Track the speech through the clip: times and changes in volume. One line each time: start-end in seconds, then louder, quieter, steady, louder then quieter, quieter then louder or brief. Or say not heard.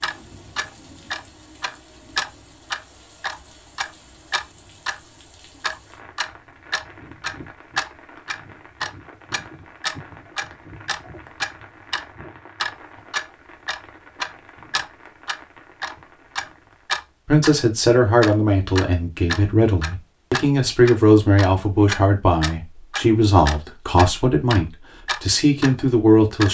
17.2-26.4 steady.